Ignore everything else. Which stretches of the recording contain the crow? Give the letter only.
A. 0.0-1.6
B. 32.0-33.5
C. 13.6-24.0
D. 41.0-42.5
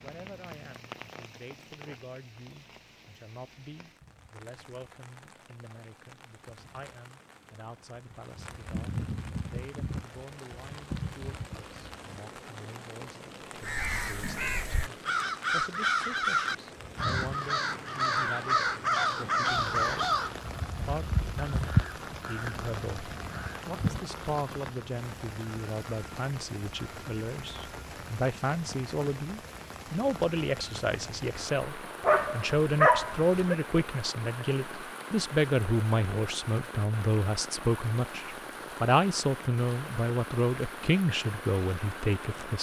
C.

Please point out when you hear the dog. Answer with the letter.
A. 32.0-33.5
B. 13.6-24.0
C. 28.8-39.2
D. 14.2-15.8
A.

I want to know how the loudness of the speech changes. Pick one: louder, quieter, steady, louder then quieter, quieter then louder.
louder.